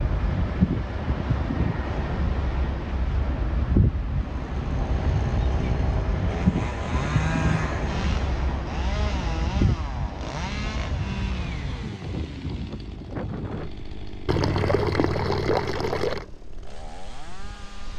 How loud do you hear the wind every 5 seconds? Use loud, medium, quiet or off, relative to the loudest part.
loud, loud, medium, quiet.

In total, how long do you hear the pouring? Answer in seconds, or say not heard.
2 s.